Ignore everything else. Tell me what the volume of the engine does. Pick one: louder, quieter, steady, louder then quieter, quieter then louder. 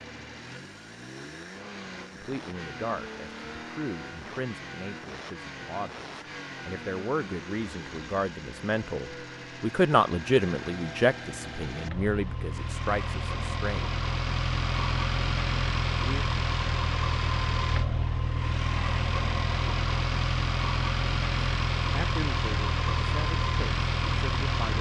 louder.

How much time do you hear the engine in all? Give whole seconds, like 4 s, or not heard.
25 s.